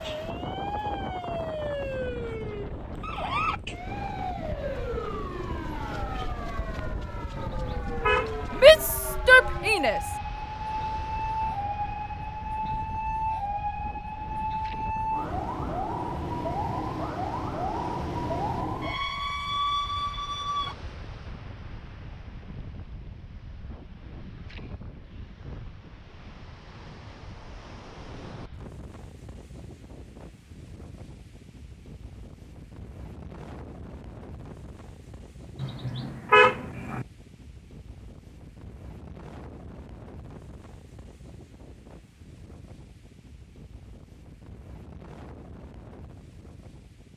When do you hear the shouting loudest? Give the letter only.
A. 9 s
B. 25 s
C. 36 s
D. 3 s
A.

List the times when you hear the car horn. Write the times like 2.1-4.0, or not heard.
7.3-8.4, 35.6-37.0.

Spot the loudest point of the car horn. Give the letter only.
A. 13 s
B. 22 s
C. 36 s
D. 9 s
C.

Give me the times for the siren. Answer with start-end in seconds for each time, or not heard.
0.0-20.8.